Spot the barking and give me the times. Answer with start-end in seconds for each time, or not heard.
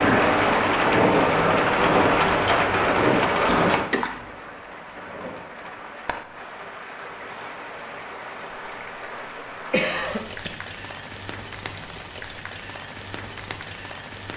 not heard.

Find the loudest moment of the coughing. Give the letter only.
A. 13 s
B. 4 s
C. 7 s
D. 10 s
D.